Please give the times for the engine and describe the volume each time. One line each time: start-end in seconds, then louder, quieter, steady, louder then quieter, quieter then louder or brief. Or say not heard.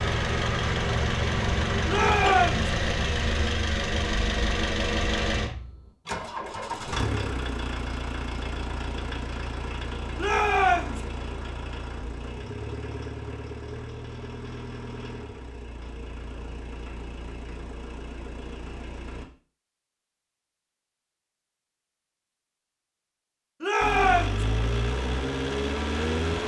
0.0-19.2 quieter
23.8-26.4 brief.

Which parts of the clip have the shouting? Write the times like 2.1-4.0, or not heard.
1.9-2.7, 10.2-11.0, 23.6-24.4.